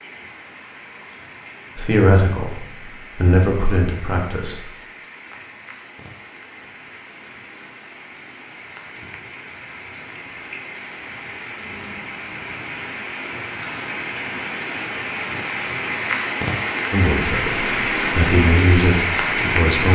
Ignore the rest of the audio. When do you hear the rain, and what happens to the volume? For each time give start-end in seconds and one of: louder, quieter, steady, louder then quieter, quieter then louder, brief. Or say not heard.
0.0-19.9 louder.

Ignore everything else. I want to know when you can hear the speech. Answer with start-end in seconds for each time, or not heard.
1.8-4.7, 16.9-19.9.